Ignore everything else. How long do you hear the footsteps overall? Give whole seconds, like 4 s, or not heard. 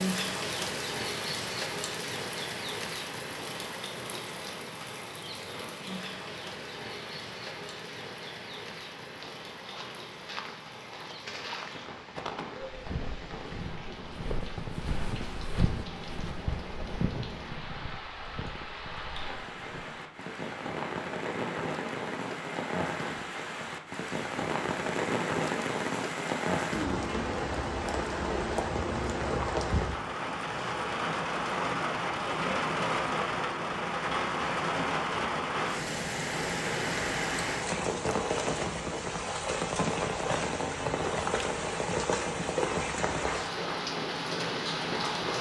11 s.